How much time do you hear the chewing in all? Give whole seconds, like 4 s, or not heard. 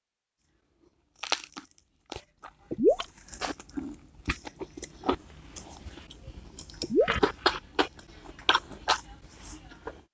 9 s.